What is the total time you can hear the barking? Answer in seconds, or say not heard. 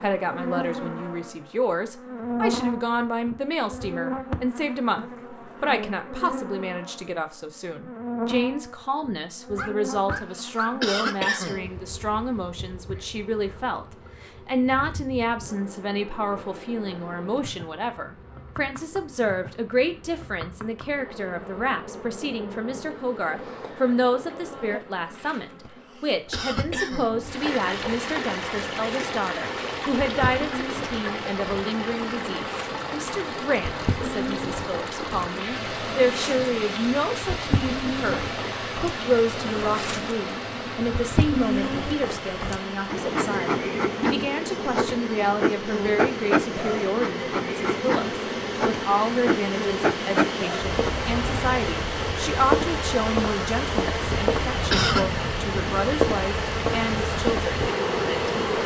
2 s.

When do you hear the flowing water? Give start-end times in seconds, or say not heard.
27.2-58.6.